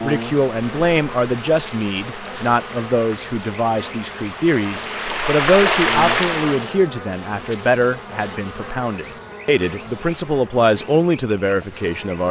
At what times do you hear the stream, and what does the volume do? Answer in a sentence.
The stream can be heard from 0.0 to 6.7 s, getting louder.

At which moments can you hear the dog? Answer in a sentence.
The dog can't be heard in this clip.